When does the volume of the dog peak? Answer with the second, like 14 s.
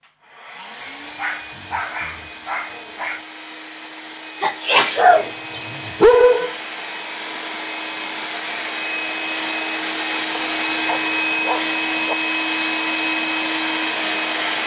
6 s.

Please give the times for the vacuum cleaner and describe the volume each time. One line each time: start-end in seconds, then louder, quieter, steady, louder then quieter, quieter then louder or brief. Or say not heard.
0.0-14.6 louder.